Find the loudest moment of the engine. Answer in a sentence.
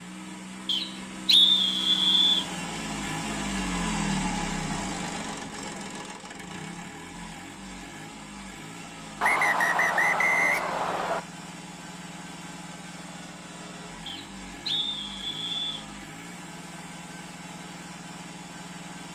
The volume of the engine peaks at 4 seconds.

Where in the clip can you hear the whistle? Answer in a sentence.
The whistle can be heard from 0.7 to 2.5 s, from 9.2 to 11.2 s and from 14.1 to 15.8 s.